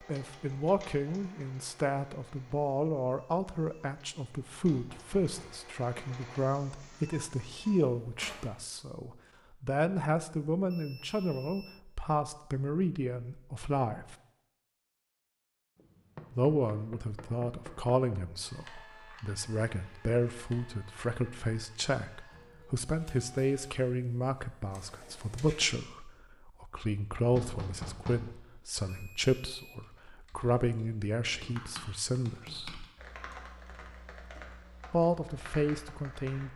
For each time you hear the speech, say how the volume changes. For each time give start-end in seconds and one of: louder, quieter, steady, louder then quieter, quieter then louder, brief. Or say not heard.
0.1-14.2 steady
16.3-32.9 steady
34.9-36.5 brief.